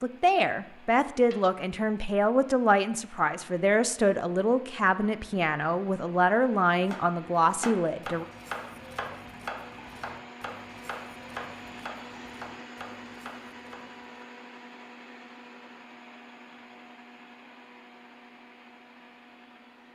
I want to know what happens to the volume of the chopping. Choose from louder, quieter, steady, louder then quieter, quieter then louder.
quieter.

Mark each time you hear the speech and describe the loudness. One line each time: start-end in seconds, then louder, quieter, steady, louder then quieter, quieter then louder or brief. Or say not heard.
0.0-8.2 steady.